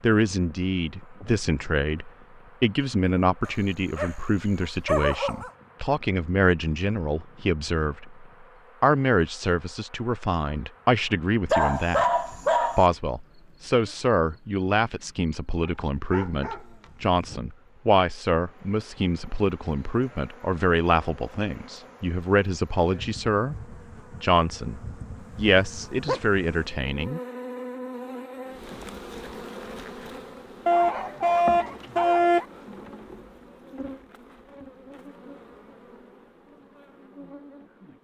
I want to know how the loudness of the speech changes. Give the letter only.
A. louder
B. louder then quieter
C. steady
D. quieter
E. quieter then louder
C.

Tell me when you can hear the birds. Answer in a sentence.
You can't hear the birds here.